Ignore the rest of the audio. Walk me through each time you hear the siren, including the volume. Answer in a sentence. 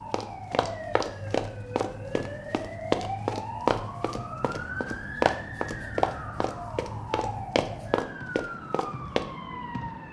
The siren can be heard from 0.0 to 10.0 s, at a steady volume.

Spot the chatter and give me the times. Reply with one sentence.
You can't hear the chatter here.